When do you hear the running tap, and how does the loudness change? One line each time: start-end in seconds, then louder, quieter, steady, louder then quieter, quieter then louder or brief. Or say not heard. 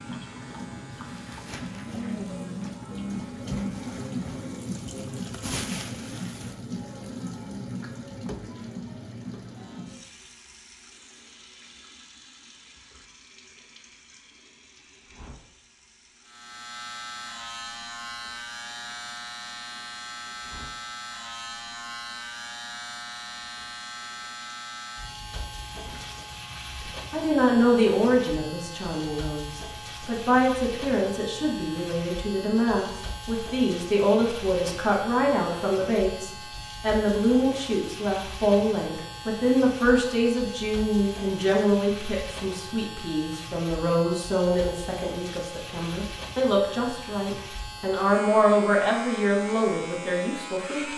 0.0-26.2 quieter.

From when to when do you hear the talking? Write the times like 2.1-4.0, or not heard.
26.8-50.9.